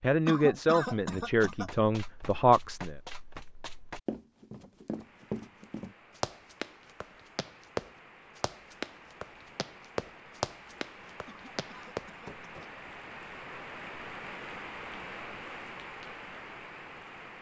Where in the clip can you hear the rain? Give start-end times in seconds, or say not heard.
4.8-17.3.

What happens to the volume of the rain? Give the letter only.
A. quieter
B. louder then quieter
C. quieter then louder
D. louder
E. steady
D.